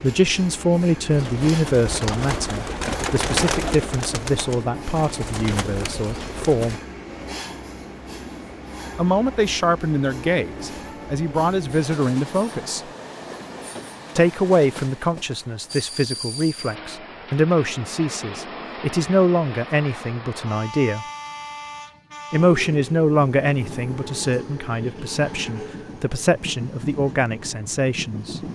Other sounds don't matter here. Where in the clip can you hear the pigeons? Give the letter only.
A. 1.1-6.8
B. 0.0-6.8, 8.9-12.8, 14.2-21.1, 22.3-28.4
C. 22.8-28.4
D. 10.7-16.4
A.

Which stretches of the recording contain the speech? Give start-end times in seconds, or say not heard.
0.0-6.8, 8.9-12.8, 14.2-21.1, 22.3-28.4.